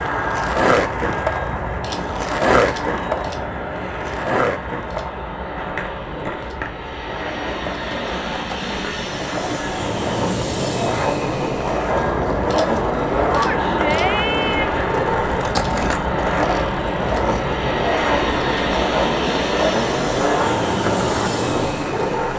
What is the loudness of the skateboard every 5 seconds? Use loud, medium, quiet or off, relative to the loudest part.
loud, medium, loud, loud, loud.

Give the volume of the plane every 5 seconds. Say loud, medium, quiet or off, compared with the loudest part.
loud, medium, loud, loud, loud.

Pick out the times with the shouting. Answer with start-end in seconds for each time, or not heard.
13.3-14.8.